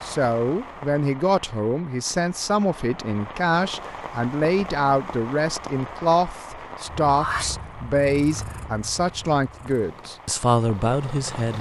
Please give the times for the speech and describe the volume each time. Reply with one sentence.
The speech can be heard from 0.0 to 11.5 s, at a steady volume.